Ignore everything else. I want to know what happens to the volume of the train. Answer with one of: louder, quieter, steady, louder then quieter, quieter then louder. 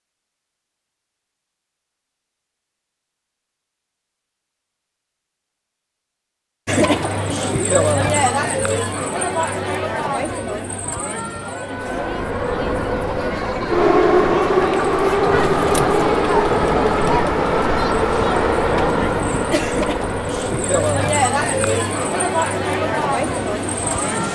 quieter.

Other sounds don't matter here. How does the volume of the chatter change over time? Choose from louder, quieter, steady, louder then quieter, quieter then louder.
quieter then louder.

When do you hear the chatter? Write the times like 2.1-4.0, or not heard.
6.7-24.2.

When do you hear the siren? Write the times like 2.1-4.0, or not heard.
not heard.